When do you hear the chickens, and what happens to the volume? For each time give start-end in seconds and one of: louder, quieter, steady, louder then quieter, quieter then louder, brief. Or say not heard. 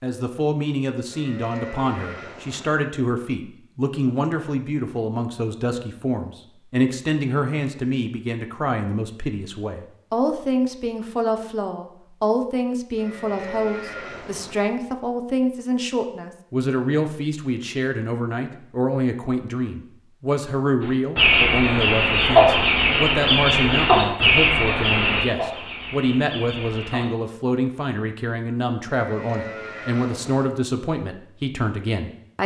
20.8-27.1 quieter.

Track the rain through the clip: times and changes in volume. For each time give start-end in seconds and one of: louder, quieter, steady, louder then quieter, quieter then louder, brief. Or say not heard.
not heard.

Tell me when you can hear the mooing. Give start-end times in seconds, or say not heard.
1.1-2.7, 12.9-14.6, 28.9-30.4.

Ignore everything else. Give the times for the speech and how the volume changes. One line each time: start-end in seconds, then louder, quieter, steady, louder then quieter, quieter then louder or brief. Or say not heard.
0.0-32.4 steady.